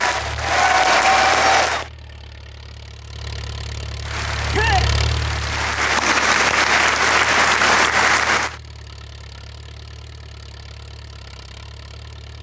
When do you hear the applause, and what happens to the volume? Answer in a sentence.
The applause can be heard briefly from 0.0 to 1.9 s; and from 4.0 to 8.6 s, getting louder.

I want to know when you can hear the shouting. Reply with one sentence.
The shouting can be heard from 4.5 to 4.9 s.